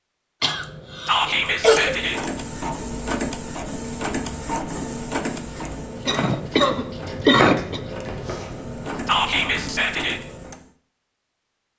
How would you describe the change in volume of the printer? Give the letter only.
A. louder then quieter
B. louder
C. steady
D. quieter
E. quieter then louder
E.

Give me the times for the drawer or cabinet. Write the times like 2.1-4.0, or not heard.
not heard.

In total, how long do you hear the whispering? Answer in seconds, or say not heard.
2 s.